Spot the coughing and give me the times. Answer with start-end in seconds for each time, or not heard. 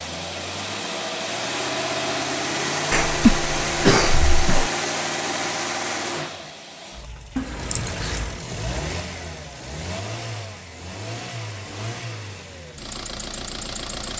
2.9-4.7, 7.3-8.4.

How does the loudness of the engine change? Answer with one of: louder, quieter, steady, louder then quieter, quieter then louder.
quieter.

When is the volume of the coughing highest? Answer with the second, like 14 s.
3 s.